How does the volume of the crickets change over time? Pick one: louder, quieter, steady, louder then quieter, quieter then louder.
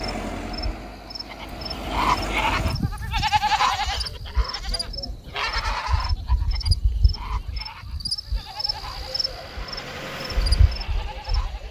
louder.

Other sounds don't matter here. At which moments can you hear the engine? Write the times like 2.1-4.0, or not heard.
0.0-2.8, 8.8-11.6.